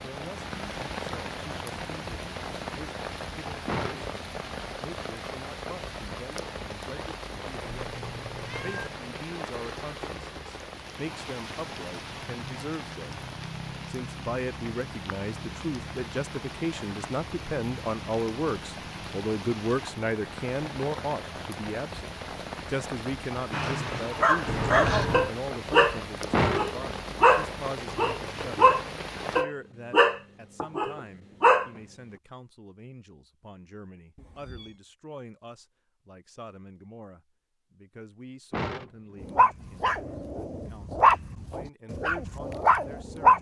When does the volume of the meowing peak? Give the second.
25 s.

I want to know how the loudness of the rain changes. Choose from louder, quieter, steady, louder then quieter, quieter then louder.
steady.